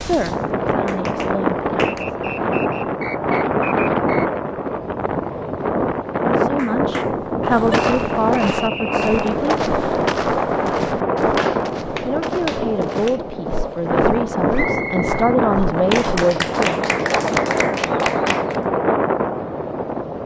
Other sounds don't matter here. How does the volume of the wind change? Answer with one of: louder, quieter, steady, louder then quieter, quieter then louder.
steady.